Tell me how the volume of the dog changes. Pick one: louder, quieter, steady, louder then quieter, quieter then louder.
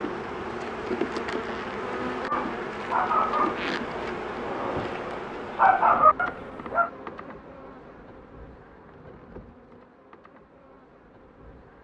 quieter then louder.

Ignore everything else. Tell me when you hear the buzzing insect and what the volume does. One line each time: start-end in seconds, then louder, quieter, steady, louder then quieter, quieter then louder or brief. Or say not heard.
0.0-11.7 quieter.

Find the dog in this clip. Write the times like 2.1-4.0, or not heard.
2.1-6.9.